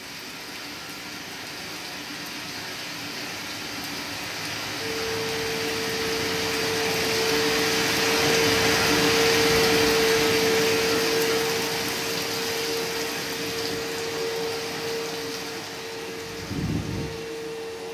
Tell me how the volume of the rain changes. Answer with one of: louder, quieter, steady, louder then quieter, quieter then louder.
louder then quieter.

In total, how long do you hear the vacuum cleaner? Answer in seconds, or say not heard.
13 s.